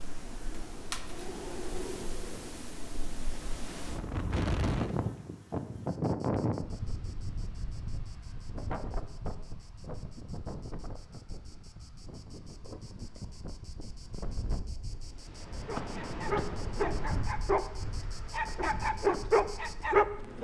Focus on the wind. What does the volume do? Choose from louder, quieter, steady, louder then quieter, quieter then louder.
louder then quieter.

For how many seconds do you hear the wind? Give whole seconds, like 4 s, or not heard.
20 s.